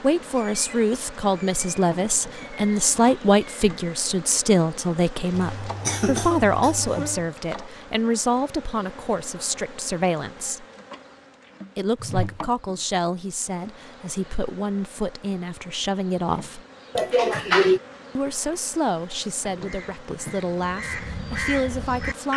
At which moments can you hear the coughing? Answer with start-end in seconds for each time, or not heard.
5.3-7.2, 16.9-17.8.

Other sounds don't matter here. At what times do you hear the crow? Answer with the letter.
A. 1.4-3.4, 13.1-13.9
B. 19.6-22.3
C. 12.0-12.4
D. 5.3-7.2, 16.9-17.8
B.